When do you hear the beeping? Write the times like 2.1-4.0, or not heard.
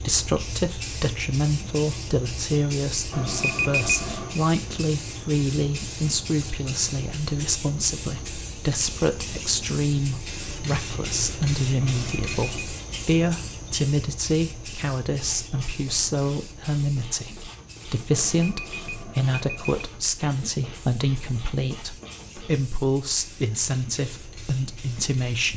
3.1-4.4, 11.8-12.7, 18.1-19.9.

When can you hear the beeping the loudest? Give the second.
4 s.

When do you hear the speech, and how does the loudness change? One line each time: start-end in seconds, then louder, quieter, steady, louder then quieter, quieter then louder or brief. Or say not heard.
0.1-25.5 steady.